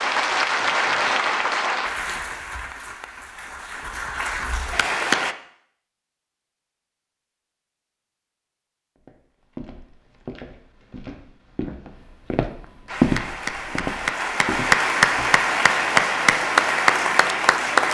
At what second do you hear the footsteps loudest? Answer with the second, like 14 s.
13 s.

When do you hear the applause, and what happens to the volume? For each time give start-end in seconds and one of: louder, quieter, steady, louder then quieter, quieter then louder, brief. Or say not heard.
0.0-5.3 quieter then louder
12.8-17.8 louder.